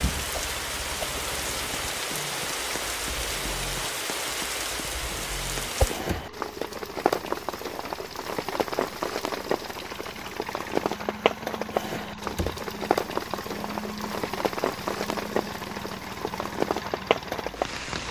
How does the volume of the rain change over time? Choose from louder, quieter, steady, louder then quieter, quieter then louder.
steady.